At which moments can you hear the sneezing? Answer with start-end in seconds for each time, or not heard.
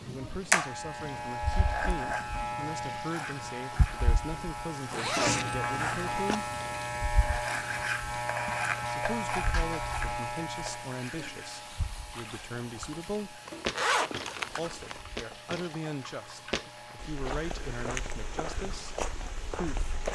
not heard.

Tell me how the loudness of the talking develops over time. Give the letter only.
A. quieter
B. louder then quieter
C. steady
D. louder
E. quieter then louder
C.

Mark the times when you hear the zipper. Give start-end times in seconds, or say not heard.
4.9-6.4, 13.4-15.1.